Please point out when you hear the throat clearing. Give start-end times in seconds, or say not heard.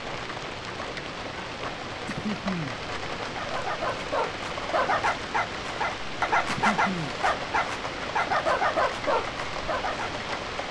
2.0-2.8, 6.5-7.2.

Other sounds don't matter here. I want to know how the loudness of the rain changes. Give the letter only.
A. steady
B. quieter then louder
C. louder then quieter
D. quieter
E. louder
A.